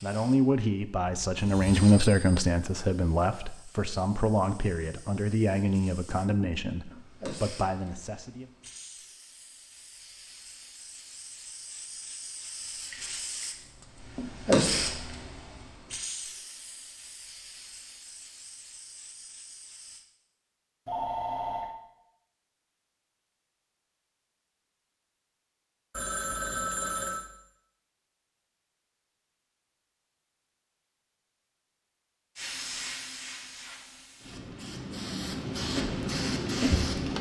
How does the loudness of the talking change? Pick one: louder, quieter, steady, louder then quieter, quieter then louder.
quieter.